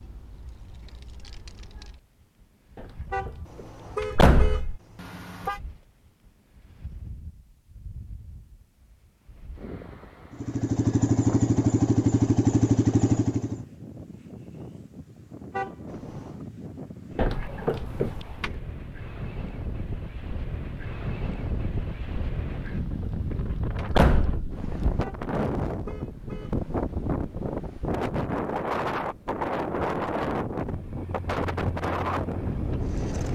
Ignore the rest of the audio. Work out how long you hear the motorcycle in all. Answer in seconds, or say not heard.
6 s.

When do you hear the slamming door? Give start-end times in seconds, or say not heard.
2.8-3.3, 4.0-4.8, 17.1-18.6, 22.6-24.6.